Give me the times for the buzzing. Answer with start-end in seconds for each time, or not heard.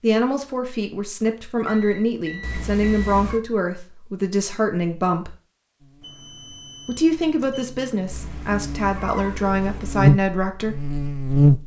5.8-11.6.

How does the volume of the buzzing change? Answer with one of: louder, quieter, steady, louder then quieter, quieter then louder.
louder then quieter.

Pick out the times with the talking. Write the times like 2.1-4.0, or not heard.
0.0-5.3, 6.8-10.8.